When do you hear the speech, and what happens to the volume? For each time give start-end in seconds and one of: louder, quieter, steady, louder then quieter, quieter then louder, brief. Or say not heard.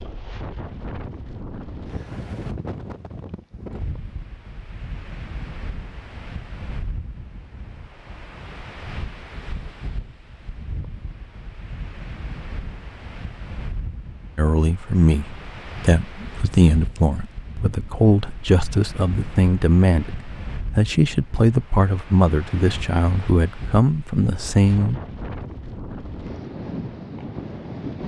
14.3-25.0 steady.